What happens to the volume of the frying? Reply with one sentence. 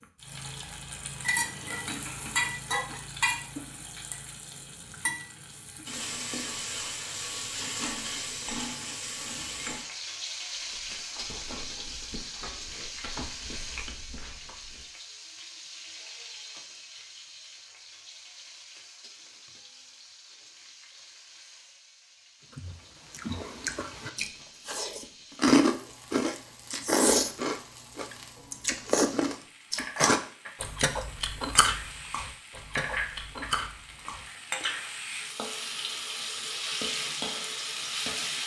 The volume of the frying goes down, then up.